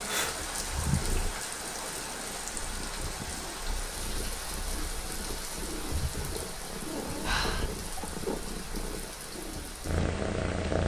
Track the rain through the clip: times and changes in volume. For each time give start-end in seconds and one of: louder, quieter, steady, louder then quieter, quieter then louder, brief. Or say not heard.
0.0-10.8 quieter.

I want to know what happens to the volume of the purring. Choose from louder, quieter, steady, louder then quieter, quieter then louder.
louder.